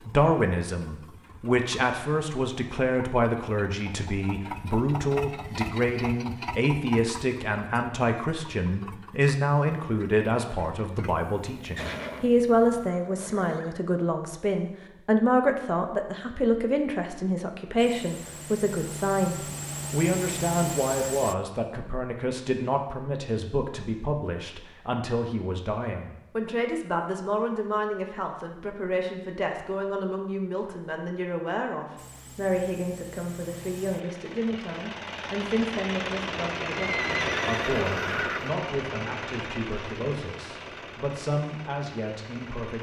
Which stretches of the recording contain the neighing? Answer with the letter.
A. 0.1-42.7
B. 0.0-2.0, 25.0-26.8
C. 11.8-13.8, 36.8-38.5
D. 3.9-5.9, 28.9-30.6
C.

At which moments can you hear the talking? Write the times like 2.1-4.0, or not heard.
0.1-42.7.